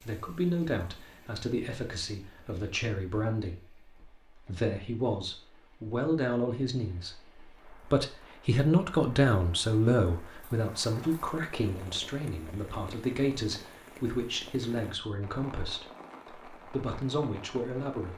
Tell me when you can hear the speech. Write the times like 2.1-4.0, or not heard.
0.0-18.1.